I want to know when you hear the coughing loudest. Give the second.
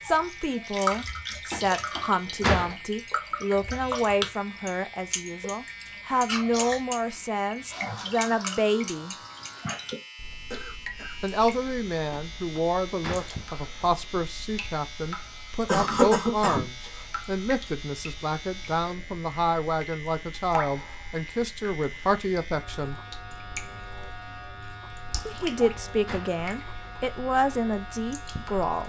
16 s.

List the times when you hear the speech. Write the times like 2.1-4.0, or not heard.
0.0-9.2, 11.2-22.9, 25.2-28.8.